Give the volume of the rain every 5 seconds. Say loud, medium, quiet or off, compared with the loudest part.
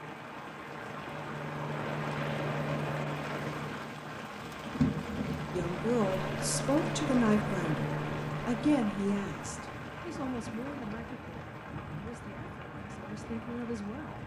loud, loud, medium.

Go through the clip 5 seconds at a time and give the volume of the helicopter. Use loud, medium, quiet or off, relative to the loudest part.
loud, loud, off.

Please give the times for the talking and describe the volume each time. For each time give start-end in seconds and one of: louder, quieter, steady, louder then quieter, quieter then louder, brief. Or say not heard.
5.5-14.2 quieter.